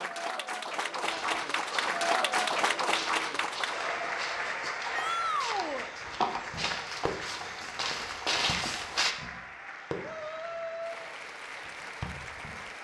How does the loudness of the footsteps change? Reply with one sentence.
The volume of the footsteps goes up.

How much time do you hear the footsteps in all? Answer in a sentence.
The footsteps can be heard for 8 seconds in total.